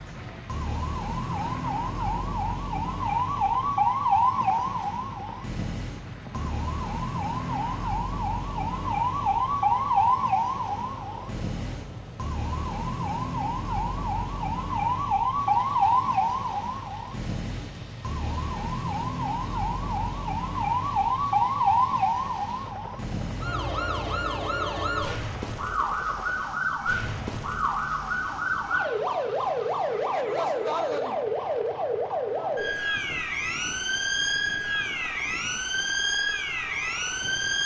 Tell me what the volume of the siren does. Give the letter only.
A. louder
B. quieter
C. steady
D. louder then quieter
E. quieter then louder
C.